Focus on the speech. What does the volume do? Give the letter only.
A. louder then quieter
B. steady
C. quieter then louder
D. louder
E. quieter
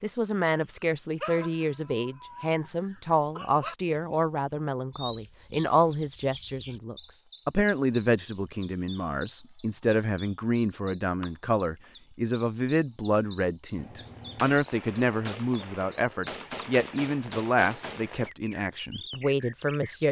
B.